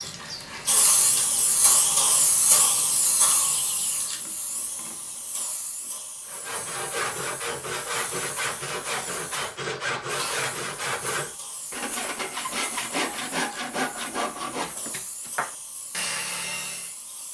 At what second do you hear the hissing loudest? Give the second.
2 s.